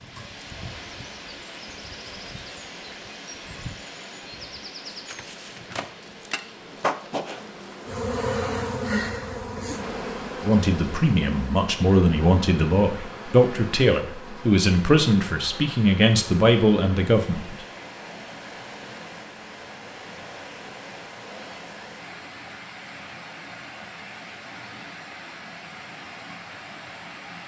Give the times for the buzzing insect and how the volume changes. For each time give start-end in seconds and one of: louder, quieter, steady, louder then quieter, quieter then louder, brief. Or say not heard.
0.0-14.7 louder then quieter.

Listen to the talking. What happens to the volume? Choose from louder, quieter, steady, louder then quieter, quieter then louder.
steady.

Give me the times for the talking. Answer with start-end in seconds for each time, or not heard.
10.4-17.6.